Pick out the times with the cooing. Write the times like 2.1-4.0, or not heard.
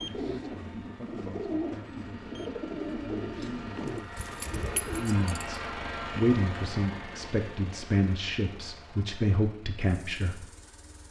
0.0-5.0.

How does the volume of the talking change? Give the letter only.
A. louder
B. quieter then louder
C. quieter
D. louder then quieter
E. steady
A.